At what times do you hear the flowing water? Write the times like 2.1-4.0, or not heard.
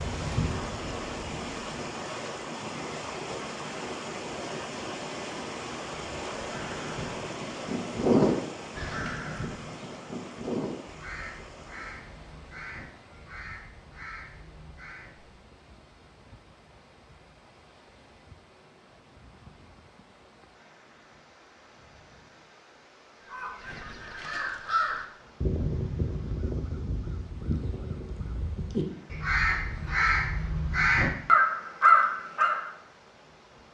0.0-33.6.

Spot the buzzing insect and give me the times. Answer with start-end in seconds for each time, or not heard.
0.0-1.9.